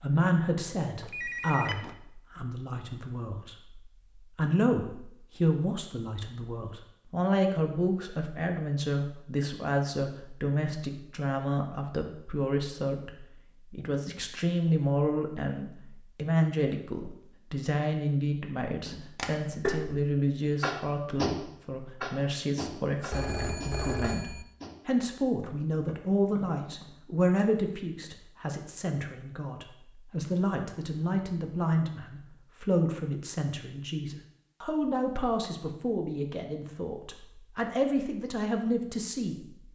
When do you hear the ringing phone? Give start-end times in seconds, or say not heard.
1.0-1.9, 23.1-24.4.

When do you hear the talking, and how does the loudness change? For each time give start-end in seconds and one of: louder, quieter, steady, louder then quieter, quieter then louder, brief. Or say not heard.
0.0-39.4 steady.